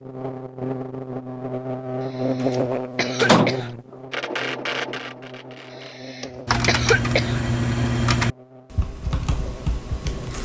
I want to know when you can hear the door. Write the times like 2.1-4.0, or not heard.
2.4-3.5.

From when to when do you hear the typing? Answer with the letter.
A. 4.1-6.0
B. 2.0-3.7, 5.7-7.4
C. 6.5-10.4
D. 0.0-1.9
C.